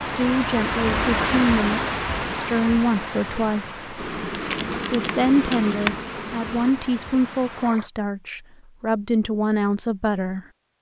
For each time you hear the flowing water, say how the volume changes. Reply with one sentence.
The flowing water can be heard from 0.0 to 7.9 s, getting quieter.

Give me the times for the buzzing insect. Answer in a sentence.
The buzzing insect can be heard from 4.0 to 6.8 s.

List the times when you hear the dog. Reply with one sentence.
You can't hear the dog here.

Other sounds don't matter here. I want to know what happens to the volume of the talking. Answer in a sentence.
The volume of the talking stays about the same.